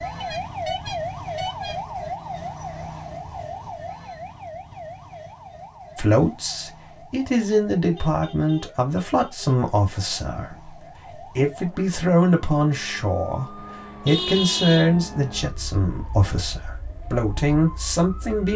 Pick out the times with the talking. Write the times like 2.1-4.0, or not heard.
6.0-18.5.